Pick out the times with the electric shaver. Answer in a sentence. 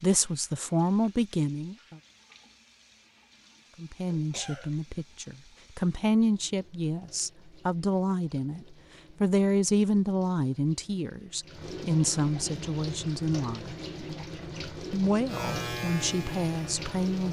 The electric shaver can be heard from 15.2 to 17.2 s.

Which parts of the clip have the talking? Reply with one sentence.
You can hear the talking from 0.0 to 2.0 s, from 3.8 to 13.8 s and from 14.9 to 17.2 s.